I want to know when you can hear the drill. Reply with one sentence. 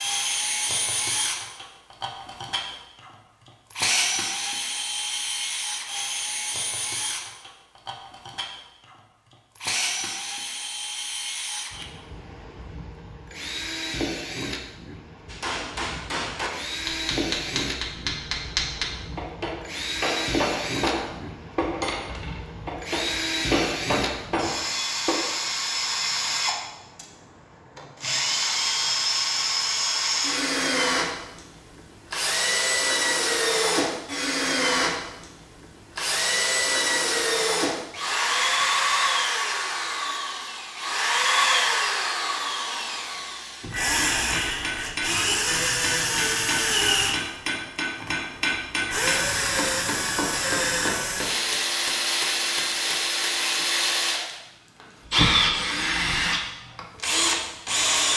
The drill can be heard from 0.0 to 58.1 s.